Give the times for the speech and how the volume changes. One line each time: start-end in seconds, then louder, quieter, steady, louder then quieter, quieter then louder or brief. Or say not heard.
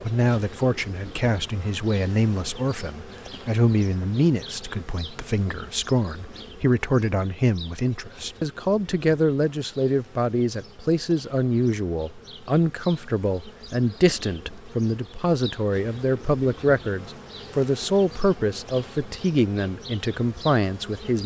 0.0-21.2 steady.